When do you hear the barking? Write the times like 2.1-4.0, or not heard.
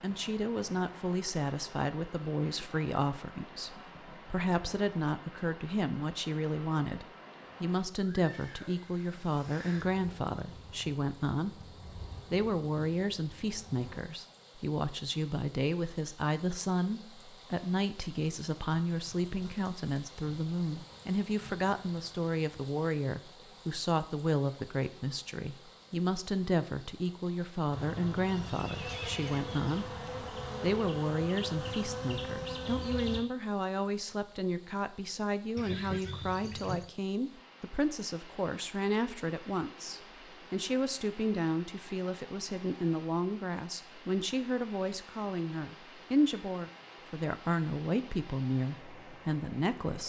not heard.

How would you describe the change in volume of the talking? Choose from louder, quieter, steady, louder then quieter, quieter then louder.
steady.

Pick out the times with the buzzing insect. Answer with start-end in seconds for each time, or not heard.
8.6-14.1, 27.7-33.2.